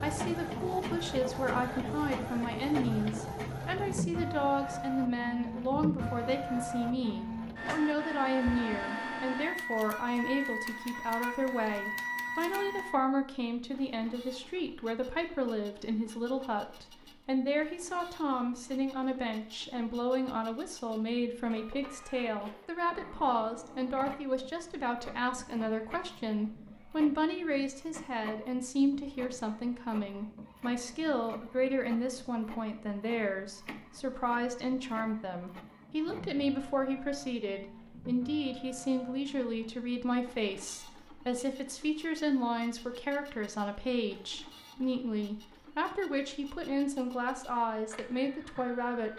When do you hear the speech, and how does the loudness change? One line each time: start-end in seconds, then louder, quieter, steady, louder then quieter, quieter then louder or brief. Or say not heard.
0.0-49.1 steady.